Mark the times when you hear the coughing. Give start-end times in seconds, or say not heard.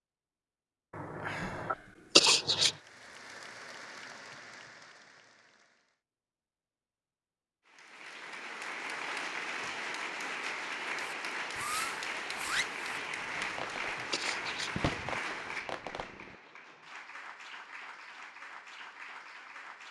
0.9-2.8, 12.9-14.9.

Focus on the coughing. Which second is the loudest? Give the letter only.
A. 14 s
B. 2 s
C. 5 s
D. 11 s
B.